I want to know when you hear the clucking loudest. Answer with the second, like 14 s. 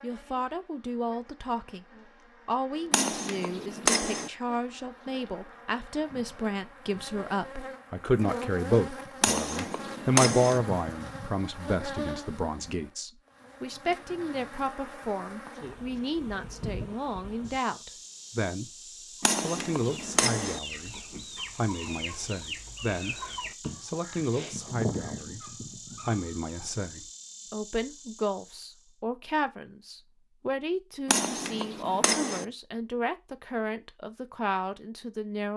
25 s.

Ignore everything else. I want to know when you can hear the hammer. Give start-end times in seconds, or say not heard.
2.9-4.3, 9.2-10.6, 19.2-20.6, 31.1-32.5.